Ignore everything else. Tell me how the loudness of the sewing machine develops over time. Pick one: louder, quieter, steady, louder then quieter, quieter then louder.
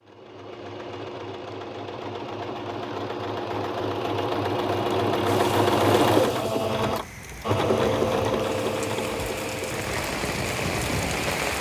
louder then quieter.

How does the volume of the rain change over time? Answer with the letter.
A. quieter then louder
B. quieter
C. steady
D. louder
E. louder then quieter
D.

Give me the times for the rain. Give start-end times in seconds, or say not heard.
5.2-11.5.